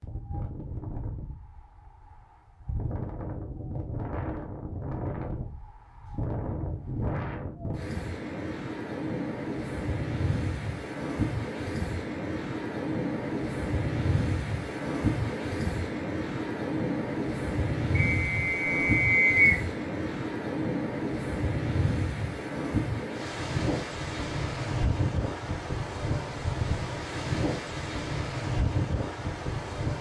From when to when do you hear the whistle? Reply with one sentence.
The whistle can be heard from 17.9 to 19.6 s.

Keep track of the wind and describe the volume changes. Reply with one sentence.
The loudness of the wind goes up.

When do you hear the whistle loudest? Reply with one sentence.
The volume of the whistle peaks at 19 seconds.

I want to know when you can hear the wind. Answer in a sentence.
The wind can be heard from 0.0 to 29.9 s.